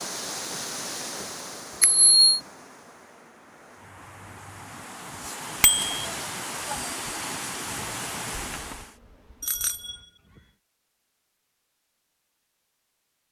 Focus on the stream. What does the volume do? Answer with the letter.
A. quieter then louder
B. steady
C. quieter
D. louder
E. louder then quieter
A.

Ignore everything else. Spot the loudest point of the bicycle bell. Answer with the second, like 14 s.
2 s.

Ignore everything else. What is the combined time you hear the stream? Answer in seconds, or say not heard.
9 s.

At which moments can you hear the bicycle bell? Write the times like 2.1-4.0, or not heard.
1.8-2.4, 5.6-6.0, 9.4-10.4.